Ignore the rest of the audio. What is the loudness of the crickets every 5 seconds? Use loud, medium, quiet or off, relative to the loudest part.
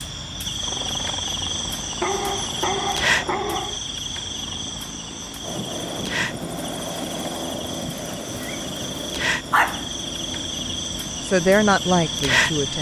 loud, medium, loud.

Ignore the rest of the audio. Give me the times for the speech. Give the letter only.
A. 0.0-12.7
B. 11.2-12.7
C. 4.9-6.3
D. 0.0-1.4
B.